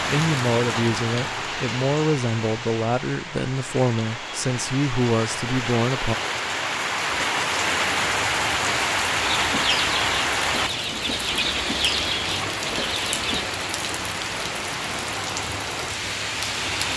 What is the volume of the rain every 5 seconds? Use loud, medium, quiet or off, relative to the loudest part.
medium, loud, loud, loud.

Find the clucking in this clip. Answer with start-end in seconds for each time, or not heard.
9.2-13.5.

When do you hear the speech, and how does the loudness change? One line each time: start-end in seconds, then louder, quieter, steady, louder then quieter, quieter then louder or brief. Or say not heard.
0.1-6.2 steady.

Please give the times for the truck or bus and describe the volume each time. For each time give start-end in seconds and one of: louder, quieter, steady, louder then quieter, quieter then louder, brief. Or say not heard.
not heard.